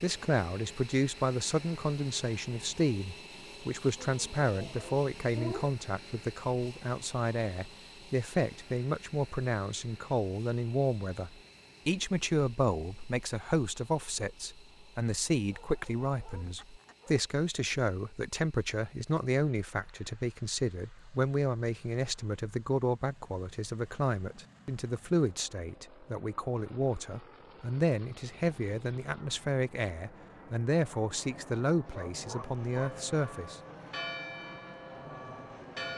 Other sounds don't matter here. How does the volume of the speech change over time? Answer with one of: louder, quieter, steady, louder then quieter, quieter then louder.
steady.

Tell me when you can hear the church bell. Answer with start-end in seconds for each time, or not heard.
32.7-35.9.